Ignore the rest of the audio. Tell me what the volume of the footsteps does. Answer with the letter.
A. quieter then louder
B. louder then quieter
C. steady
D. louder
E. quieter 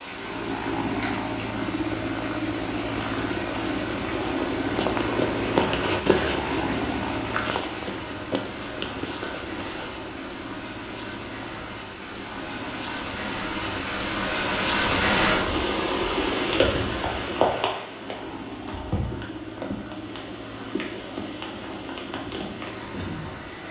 B.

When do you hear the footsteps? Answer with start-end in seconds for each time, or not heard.
2.9-9.9.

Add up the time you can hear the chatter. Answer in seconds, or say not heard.
not heard.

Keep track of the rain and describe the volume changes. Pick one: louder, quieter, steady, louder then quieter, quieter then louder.
louder then quieter.